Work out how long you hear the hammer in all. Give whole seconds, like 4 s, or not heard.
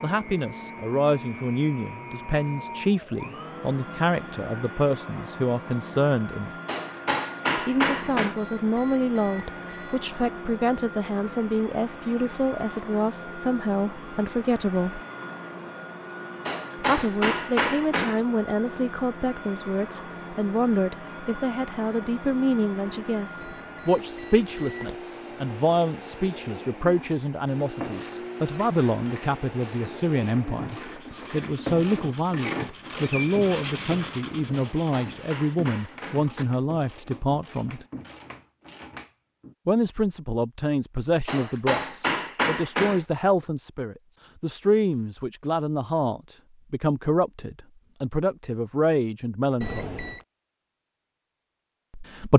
7 s.